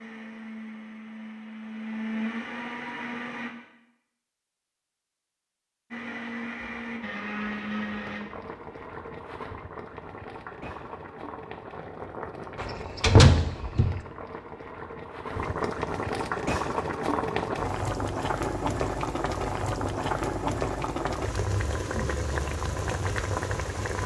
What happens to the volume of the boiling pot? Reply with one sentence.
The loudness of the boiling pot goes up.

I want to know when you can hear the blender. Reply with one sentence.
The blender can be heard from 0.0 to 3.5 s and from 5.9 to 8.2 s.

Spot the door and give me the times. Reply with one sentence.
The door can be heard from 12.6 to 14.0 s.